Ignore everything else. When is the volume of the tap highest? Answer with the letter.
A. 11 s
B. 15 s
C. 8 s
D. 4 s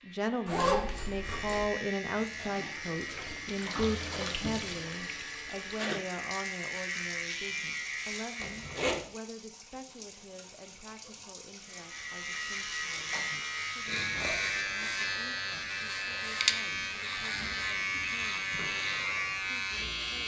D.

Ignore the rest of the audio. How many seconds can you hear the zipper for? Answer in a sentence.
The zipper can be heard for 3 seconds in total.